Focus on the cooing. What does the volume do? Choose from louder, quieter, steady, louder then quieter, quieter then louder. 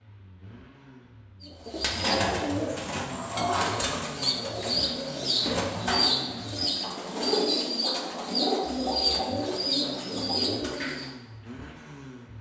steady.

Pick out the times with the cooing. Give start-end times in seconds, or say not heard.
1.4-11.1.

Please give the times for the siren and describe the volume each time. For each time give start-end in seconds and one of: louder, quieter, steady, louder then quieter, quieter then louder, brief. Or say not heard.
not heard.